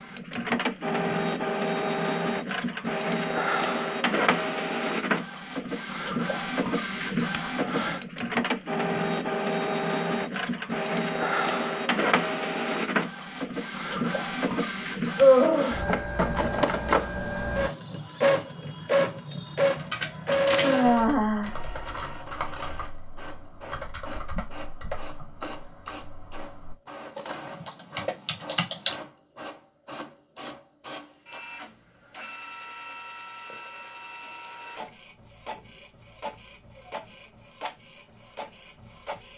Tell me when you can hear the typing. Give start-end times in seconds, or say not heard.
19.8-29.1.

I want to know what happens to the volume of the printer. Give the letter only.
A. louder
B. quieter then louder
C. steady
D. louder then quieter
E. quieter
E.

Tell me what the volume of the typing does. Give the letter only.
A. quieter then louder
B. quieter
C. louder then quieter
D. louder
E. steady
A.